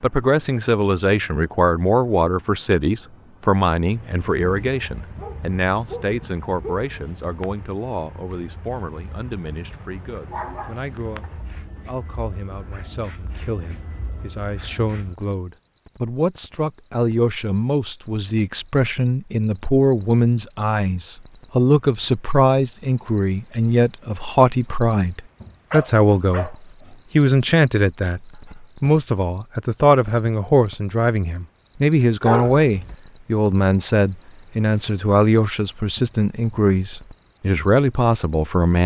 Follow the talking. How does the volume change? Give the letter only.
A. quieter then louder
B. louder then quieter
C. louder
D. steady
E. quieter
A.